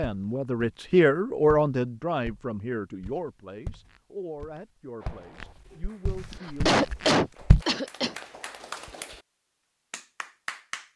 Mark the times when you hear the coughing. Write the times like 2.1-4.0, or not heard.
6.3-8.2.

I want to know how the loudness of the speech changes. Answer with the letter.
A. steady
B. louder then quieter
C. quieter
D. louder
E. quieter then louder
C.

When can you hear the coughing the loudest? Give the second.
7 s.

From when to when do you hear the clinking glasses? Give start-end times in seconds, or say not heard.
not heard.